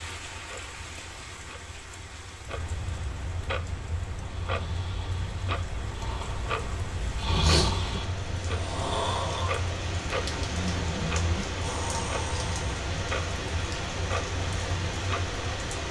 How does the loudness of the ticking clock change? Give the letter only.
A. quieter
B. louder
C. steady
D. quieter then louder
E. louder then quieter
B.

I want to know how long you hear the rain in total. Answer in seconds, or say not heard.
16 s.